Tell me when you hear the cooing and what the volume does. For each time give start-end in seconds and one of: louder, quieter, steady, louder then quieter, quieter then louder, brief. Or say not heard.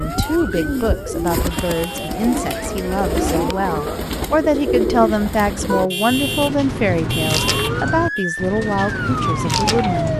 0.0-10.1 steady.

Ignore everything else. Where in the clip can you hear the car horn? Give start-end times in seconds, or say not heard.
1.3-2.2, 5.7-8.2.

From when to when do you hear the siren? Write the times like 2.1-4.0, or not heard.
0.0-4.0, 7.5-10.1.